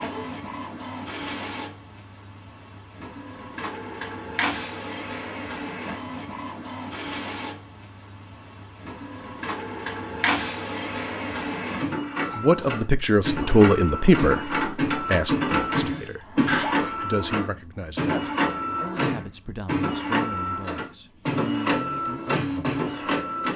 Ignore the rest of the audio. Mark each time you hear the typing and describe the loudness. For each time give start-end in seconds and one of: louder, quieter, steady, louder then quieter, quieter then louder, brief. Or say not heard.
not heard.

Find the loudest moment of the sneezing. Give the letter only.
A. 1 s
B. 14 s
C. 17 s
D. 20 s
C.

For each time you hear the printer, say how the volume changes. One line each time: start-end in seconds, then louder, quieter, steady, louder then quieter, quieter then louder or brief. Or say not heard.
0.0-23.5 louder.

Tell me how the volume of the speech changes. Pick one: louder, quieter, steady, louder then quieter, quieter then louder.
quieter.